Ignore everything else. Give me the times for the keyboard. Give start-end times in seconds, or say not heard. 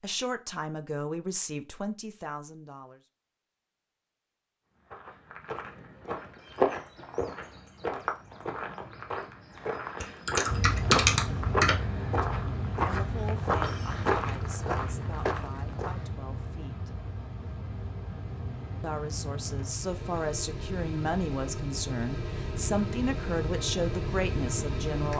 10.0-11.8.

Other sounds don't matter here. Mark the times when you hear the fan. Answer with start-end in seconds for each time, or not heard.
10.4-25.1.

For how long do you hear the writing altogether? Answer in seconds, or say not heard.
not heard.